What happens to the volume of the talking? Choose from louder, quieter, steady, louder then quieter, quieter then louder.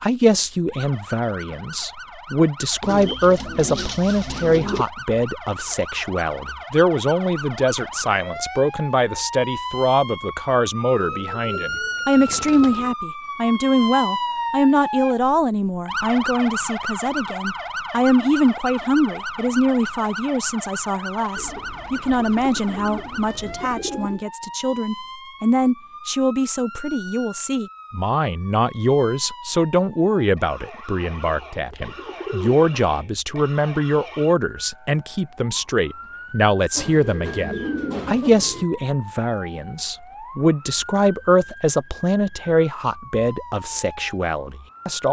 steady.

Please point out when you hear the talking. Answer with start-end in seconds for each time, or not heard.
0.0-45.0.